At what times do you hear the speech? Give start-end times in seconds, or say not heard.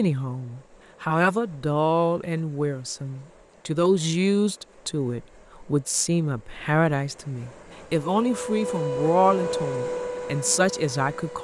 0.0-11.3.